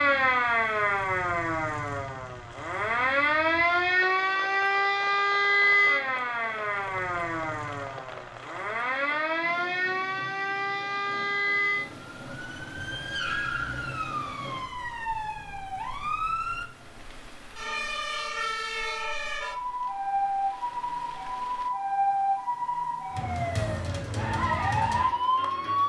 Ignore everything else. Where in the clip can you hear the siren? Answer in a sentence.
The siren can be heard from 0.0 to 25.8 s.